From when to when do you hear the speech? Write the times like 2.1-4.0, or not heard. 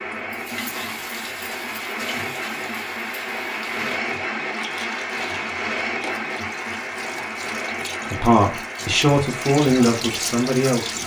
8.1-11.0.